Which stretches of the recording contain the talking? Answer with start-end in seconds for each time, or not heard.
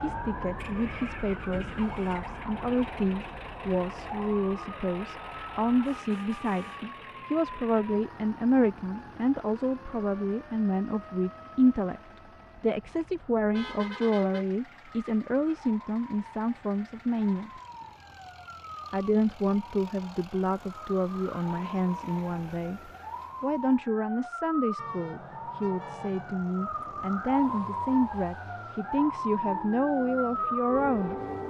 0.0-12.0, 12.6-17.5, 18.9-31.1.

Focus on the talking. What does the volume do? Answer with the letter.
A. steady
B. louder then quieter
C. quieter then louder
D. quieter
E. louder
A.